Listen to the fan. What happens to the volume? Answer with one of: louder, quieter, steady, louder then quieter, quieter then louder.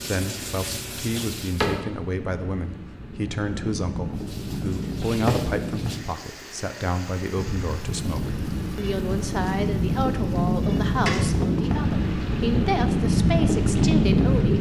louder.